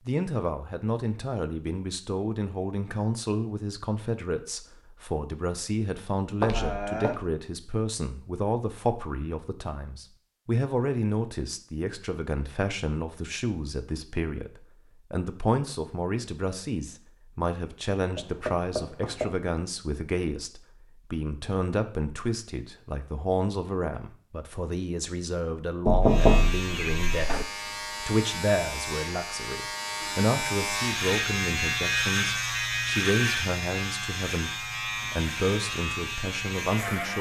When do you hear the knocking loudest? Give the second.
26 s.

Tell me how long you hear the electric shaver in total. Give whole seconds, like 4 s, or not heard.
11 s.